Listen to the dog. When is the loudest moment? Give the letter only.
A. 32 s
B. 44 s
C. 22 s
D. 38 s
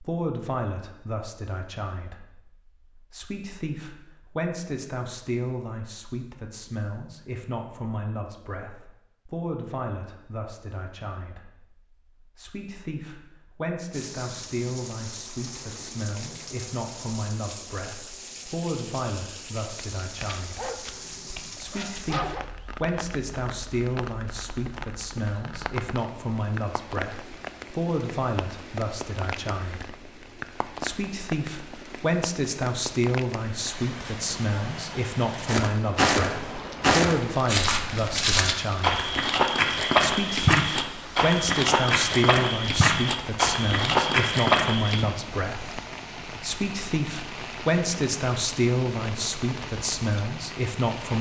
C.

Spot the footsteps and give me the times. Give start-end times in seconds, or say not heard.
35.5-45.0.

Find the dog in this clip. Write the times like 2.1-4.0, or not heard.
20.0-22.4.